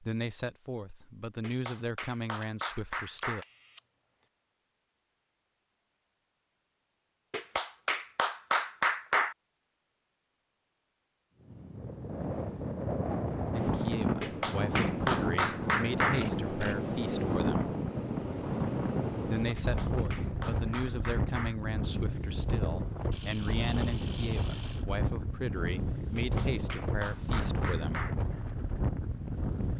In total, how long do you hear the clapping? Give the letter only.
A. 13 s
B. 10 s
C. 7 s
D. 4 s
B.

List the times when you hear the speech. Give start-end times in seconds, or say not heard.
0.0-3.5, 13.6-17.8, 19.2-28.1.